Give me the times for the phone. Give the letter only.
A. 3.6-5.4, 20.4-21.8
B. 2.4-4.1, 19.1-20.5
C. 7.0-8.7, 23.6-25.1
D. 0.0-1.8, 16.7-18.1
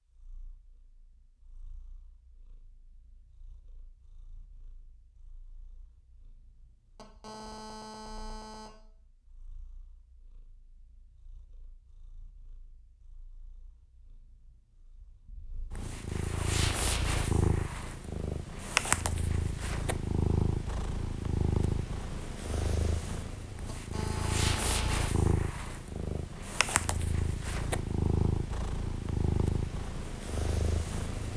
C.